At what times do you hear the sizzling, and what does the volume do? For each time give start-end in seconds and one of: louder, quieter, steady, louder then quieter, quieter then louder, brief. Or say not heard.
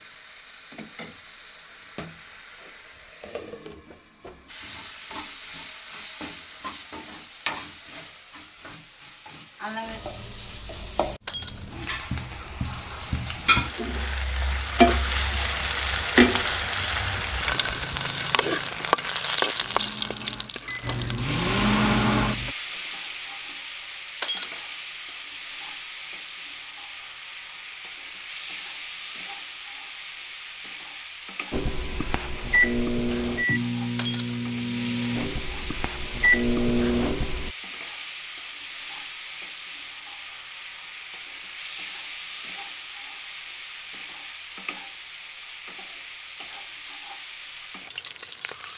0.0-48.7 louder then quieter.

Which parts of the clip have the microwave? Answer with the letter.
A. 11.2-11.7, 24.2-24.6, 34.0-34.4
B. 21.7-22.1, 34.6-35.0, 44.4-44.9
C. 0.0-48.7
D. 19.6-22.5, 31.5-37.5
D.